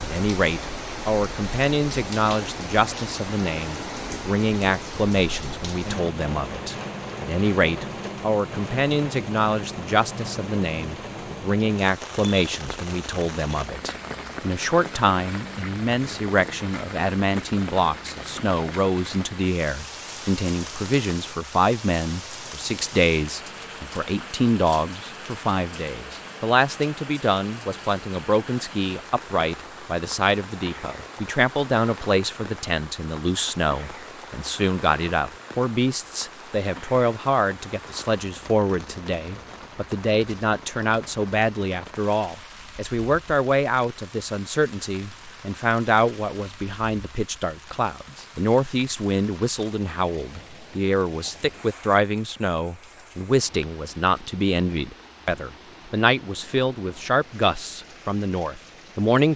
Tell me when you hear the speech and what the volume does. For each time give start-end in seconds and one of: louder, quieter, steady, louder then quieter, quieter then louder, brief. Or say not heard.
0.0-59.3 steady.